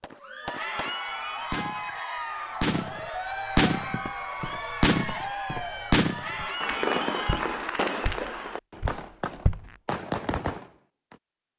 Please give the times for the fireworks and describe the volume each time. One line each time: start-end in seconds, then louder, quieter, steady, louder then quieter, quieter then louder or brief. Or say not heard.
0.0-1.9 brief
2.6-4.0 brief
4.8-5.2 brief
5.9-11.2 quieter then louder.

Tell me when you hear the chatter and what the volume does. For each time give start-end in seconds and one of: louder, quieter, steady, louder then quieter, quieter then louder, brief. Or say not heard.
0.1-7.8 steady.